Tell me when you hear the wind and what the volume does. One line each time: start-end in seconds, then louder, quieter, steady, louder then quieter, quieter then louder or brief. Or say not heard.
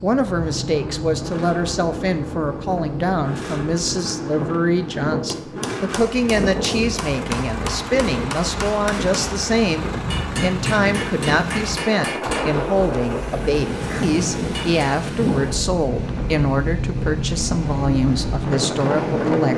0.0-19.5 louder.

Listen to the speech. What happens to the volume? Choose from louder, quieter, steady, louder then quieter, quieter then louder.
steady.